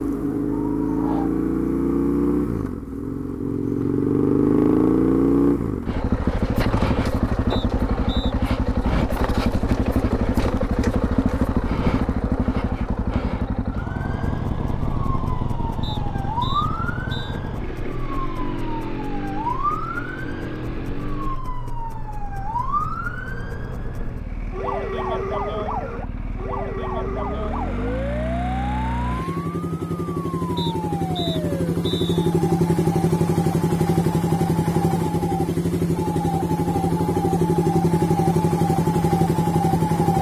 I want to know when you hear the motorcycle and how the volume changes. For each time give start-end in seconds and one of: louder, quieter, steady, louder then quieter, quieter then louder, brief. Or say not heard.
0.0-40.1 quieter then louder.